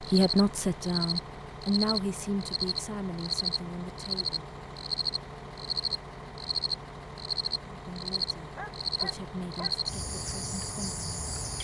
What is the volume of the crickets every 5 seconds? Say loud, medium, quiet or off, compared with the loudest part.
loud, loud, medium.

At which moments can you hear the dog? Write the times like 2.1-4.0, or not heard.
8.6-9.8.